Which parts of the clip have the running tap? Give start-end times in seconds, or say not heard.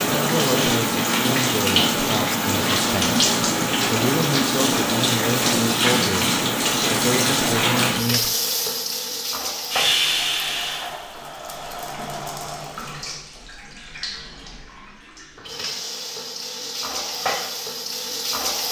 0.0-18.6.